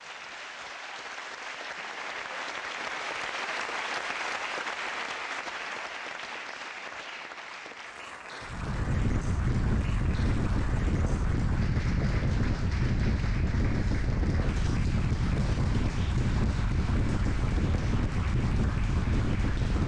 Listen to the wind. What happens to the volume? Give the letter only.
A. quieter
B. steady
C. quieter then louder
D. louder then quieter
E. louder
B.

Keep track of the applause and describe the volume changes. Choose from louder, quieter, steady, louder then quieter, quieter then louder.
quieter.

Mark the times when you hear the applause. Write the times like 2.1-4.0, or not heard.
0.0-19.8.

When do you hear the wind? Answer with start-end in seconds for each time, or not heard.
8.4-19.8.